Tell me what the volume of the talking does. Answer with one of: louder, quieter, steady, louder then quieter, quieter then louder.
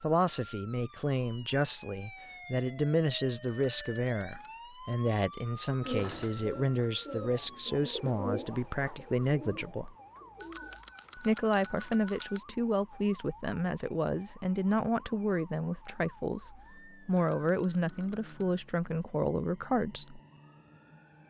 steady.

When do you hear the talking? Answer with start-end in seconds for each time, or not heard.
0.0-9.9, 11.2-20.2.